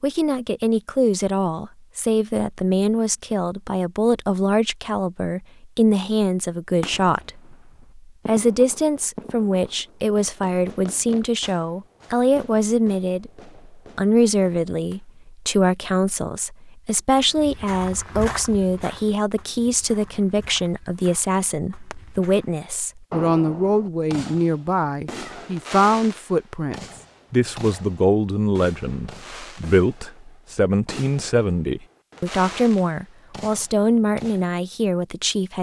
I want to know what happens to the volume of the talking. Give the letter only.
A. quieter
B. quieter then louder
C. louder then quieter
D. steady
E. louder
D.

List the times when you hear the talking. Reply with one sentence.
The talking can be heard from 0.0 to 35.5 s.